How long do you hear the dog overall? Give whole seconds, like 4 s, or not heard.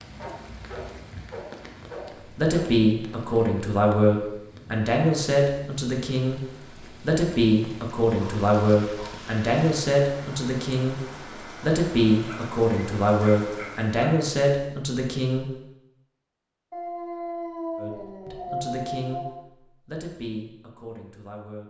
8 s.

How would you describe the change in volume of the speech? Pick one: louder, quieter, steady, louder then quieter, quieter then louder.
quieter.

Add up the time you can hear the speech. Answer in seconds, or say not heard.
17 s.